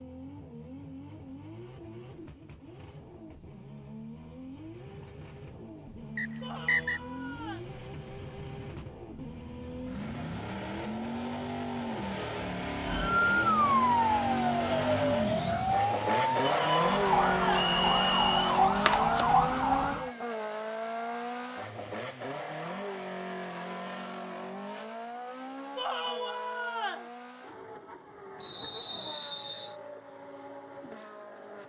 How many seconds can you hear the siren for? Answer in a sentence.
The siren can be heard for 7 seconds in total.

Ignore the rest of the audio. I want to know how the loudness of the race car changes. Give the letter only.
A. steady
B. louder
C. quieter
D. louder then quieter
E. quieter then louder
D.